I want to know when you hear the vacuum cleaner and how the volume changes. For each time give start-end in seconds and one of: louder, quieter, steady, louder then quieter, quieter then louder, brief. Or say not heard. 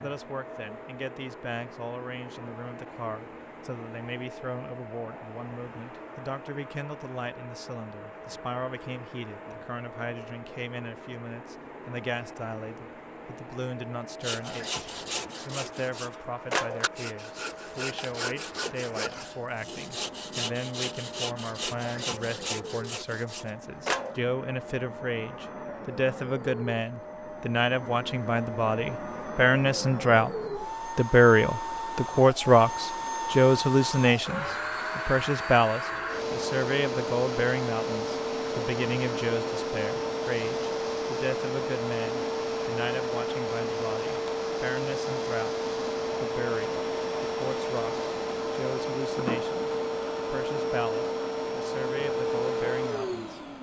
0.0-53.5 louder.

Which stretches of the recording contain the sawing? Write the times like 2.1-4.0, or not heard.
14.2-24.2.